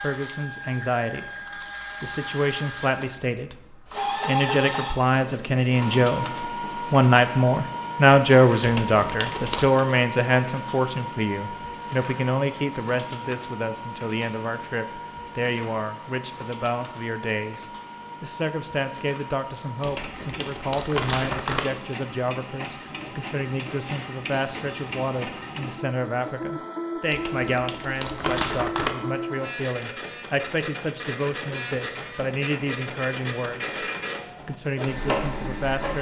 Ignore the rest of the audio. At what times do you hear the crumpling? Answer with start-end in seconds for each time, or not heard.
8.6-9.7, 19.8-21.6, 27.1-28.9.